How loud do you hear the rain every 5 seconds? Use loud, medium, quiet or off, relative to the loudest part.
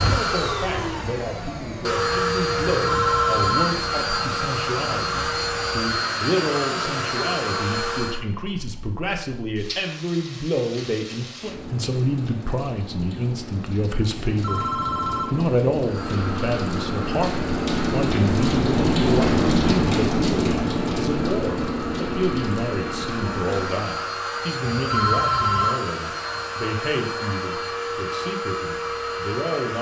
quiet, quiet, quiet, loud, loud, off.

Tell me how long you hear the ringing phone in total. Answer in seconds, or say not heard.
3 s.